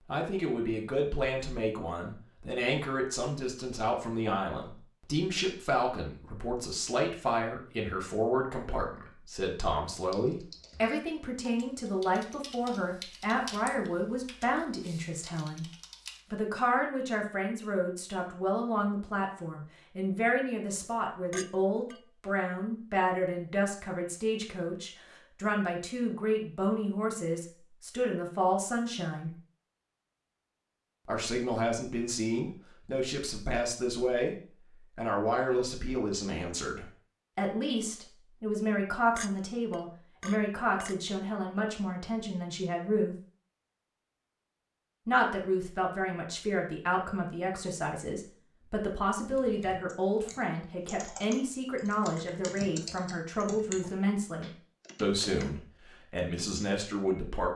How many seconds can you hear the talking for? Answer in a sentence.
You can hear the talking for 53 seconds altogether.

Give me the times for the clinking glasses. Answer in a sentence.
You can hear the clinking glasses from 21.3 to 22.0 s and from 39.1 to 41.0 s.